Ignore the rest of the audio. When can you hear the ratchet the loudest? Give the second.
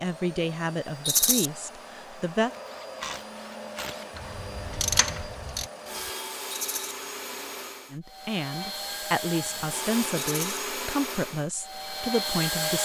5 s.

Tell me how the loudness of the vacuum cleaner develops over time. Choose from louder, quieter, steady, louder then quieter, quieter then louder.
louder.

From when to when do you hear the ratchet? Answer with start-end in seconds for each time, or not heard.
2.5-5.7.